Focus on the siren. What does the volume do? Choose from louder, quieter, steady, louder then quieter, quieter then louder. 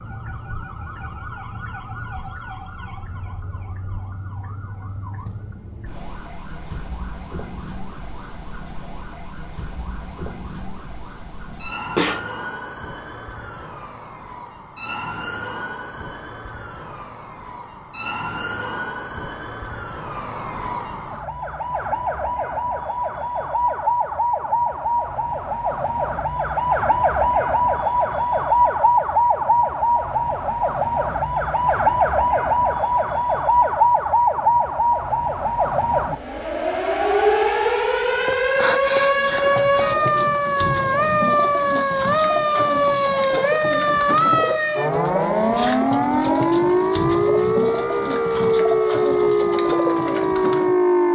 louder.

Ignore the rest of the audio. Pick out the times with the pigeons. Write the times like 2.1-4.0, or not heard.
39.1-50.8.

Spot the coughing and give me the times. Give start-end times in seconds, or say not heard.
11.5-12.2.